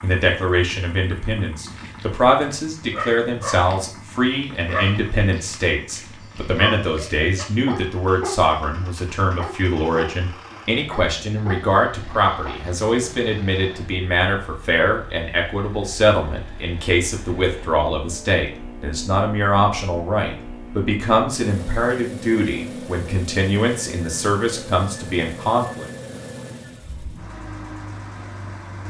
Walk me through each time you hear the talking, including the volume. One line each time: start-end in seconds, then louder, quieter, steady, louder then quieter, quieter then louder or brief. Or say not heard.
0.0-25.9 steady.